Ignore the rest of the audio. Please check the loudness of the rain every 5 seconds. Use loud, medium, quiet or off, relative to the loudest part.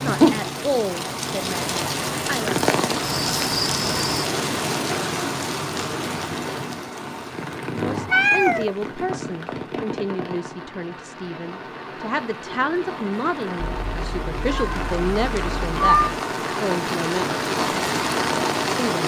loud, medium, medium, loud.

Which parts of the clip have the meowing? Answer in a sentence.
You can hear the meowing from 3.0 to 4.2 s, from 7.9 to 9.6 s and from 13.6 to 16.2 s.